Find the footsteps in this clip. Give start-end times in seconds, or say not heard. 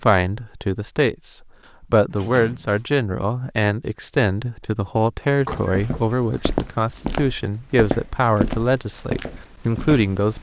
5.5-10.3.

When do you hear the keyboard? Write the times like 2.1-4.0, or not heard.
not heard.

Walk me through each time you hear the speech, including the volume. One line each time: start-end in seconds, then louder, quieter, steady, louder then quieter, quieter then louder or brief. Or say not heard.
0.0-10.3 steady.